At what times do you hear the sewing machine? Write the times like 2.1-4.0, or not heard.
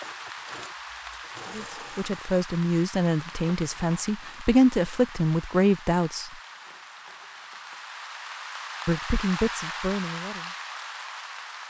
0.0-2.1.